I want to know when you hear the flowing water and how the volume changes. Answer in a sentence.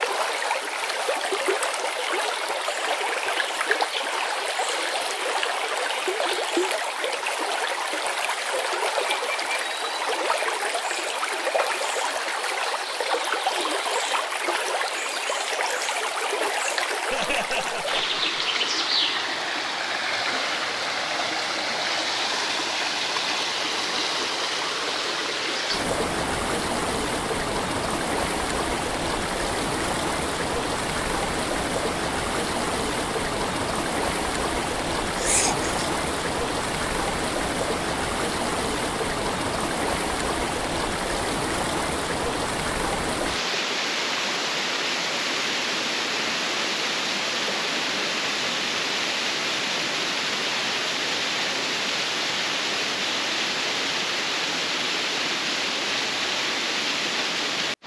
You can hear the flowing water from 0.0 to 57.8 s, at a steady volume.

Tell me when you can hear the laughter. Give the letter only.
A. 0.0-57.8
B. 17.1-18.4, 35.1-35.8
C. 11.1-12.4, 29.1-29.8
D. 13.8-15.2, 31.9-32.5
B.